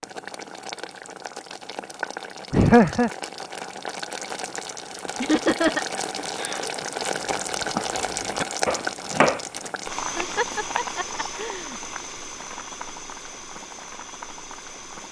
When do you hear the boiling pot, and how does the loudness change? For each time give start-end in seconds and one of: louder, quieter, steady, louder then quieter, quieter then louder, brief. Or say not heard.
0.0-15.0 louder then quieter.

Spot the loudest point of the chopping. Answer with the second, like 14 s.
9 s.